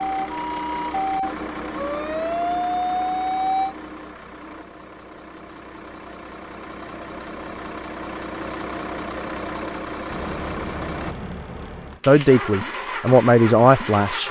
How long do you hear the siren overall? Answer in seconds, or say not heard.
4 s.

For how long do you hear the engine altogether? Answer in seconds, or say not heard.
14 s.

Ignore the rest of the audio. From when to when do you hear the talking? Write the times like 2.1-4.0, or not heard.
12.1-14.2.